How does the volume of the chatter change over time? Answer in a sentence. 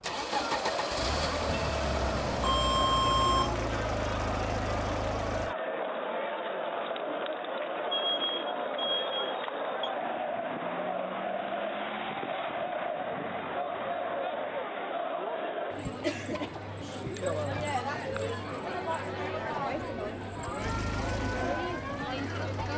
The volume of the chatter stays about the same.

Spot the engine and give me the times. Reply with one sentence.
You can hear the engine from 0.0 to 5.5 s and from 20.6 to 22.7 s.